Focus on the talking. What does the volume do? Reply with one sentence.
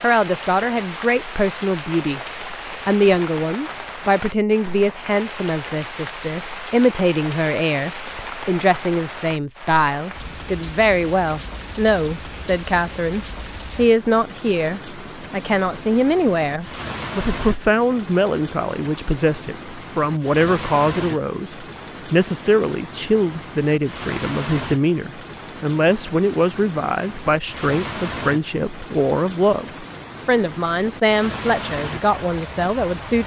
The volume of the talking stays about the same.